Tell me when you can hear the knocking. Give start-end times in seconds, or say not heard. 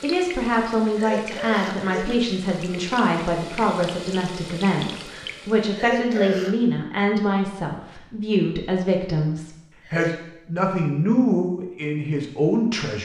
not heard.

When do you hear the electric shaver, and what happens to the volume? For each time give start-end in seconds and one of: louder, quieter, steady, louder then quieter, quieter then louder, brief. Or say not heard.
not heard.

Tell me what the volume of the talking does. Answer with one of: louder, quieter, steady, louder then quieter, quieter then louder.
steady.